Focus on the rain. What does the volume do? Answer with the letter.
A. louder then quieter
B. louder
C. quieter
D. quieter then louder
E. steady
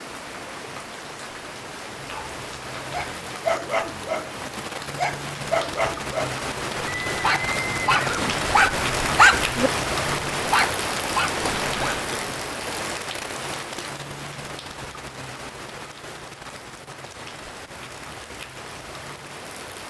A.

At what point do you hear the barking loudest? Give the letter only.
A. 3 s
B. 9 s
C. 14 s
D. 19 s
B.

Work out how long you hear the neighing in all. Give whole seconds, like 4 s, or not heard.
2 s.